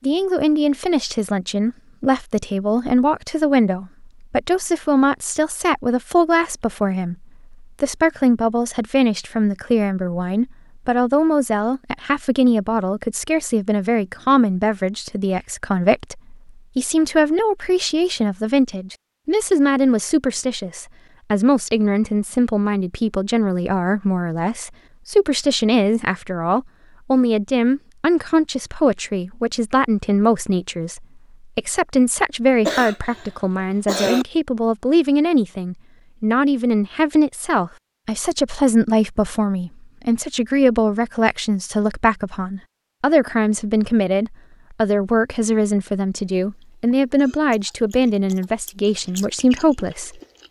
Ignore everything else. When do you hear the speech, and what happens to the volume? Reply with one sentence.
You can hear the speech from 0.0 to 50.2 s, at a steady volume.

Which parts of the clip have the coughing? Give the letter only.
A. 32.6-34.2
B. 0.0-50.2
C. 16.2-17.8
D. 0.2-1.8
A.